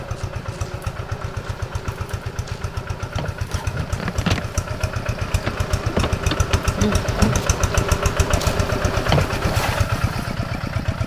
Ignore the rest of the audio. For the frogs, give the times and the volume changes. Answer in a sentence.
You can't hear the frogs here.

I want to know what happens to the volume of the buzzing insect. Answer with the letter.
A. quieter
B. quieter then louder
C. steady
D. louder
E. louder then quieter
D.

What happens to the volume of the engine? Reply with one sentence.
The loudness of the engine goes up.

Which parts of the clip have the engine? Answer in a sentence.
The engine can be heard from 0.0 to 11.0 s.